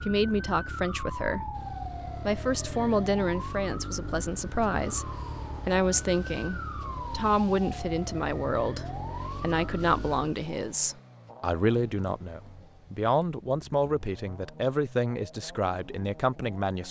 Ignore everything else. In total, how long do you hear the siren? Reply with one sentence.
You can hear the siren for 10 seconds altogether.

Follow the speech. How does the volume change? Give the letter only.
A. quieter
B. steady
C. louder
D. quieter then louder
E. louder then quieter
B.